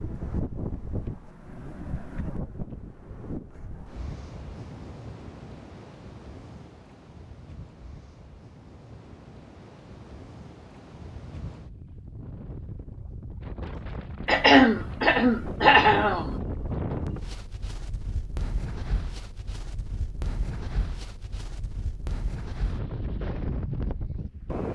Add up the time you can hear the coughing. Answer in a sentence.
The coughing can be heard for 2 seconds in total.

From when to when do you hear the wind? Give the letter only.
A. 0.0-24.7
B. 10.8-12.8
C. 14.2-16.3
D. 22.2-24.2
A.